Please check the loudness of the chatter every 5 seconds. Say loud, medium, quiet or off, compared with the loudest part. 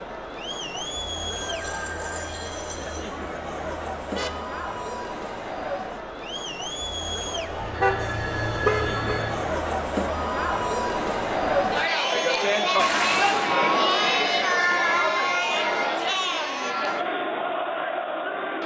medium, medium, loud, loud.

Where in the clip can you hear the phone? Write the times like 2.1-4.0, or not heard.
1.4-3.0, 7.5-9.4, 14.1-15.9.